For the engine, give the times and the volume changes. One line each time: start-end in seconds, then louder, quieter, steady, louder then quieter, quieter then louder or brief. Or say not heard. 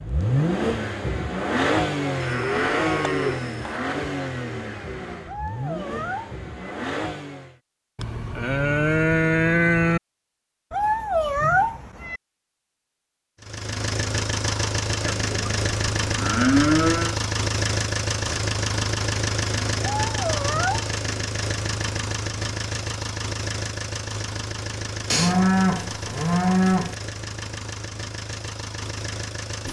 0.0-7.5 quieter
13.4-29.6 quieter.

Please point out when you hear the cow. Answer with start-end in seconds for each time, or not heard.
2.2-3.8, 8.0-10.0, 15.0-17.1, 25.1-26.9.